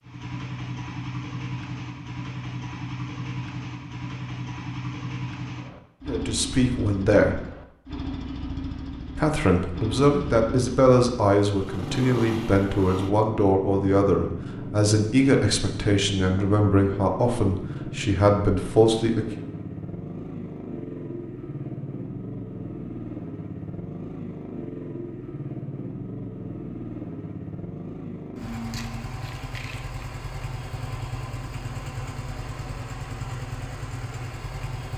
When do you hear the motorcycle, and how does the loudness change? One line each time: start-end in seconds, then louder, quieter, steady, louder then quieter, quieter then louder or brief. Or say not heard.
0.0-34.9 steady.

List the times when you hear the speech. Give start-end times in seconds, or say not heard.
6.0-7.4, 9.2-19.4.